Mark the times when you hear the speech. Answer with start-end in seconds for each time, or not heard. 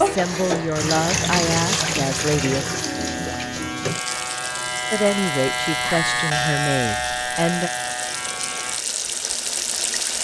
0.0-2.6, 4.9-7.7.